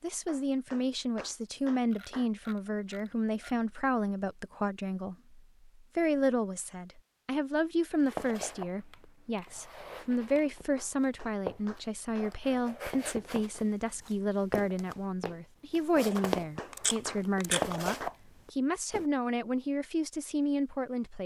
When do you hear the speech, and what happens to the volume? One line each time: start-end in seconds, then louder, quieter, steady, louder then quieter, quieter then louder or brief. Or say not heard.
0.0-21.2 steady.